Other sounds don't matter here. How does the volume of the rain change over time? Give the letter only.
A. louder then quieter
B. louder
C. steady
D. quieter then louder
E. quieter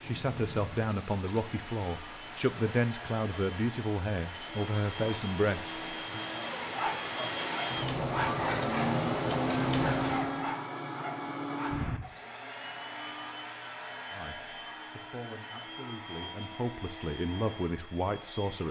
B.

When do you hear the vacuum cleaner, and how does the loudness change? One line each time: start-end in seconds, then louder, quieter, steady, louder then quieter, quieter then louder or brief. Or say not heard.
0.0-18.6 louder then quieter.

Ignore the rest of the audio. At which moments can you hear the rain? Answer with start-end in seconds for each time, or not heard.
0.0-10.4.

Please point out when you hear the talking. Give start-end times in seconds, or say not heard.
0.0-6.2, 14.1-18.6.